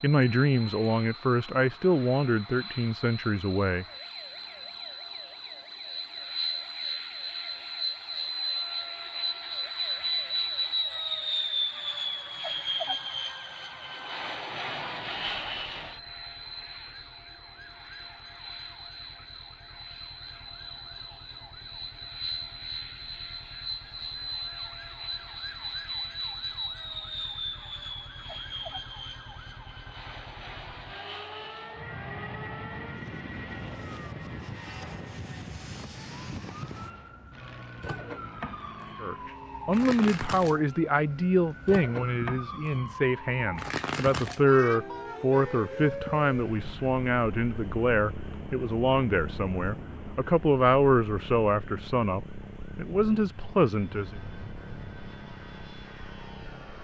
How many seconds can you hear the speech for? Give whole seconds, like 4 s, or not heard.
19 s.